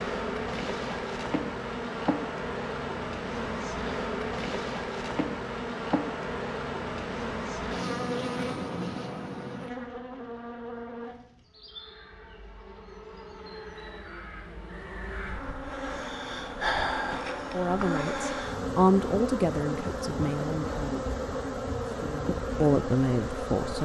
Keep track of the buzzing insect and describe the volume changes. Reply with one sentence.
The loudness of the buzzing insect goes down, then up.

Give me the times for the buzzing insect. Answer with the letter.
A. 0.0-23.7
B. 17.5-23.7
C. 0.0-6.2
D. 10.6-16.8
A.